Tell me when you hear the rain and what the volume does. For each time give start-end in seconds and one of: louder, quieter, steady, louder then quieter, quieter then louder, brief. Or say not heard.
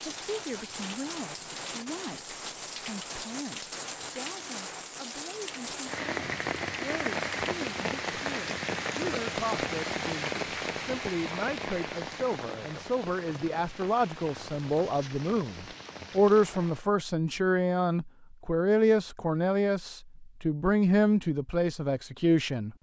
0.0-16.9 louder then quieter.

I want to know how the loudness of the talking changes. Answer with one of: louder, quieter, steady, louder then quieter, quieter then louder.
louder.